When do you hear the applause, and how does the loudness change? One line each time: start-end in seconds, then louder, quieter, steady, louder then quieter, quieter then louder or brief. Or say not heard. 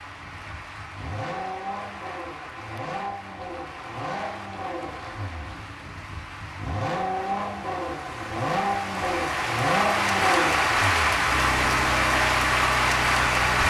0.0-13.6 louder.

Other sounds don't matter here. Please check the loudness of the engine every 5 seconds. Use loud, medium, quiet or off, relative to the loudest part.
medium, loud, loud.